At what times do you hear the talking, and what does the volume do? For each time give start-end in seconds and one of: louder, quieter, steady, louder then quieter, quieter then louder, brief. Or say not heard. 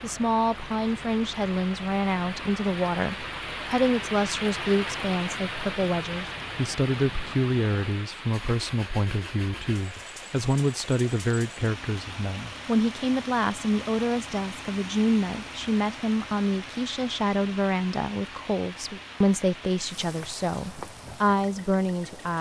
0.0-22.3 steady.